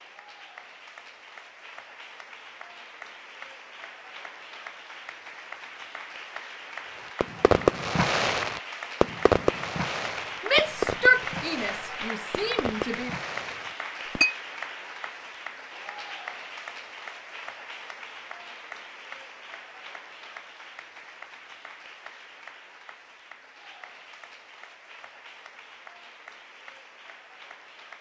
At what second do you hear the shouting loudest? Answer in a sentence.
The loudest moment of the shouting is at 11 seconds.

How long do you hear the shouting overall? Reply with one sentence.
You can hear the shouting for 3 seconds altogether.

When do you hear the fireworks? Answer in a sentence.
The fireworks can be heard from 7.2 to 14.2 s.